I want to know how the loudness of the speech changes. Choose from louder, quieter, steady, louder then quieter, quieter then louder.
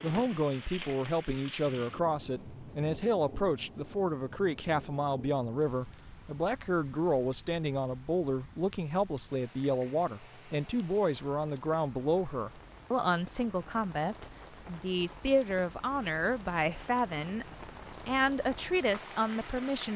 steady.